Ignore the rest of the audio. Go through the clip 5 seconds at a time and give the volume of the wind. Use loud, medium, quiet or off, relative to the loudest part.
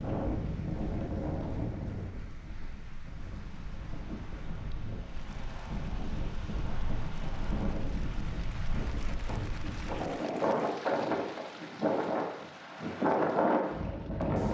medium, medium, loud.